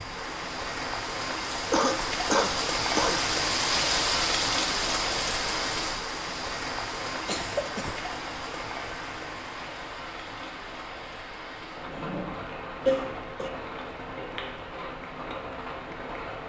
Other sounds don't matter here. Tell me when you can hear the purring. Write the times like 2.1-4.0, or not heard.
not heard.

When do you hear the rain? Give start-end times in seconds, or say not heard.
0.0-16.4.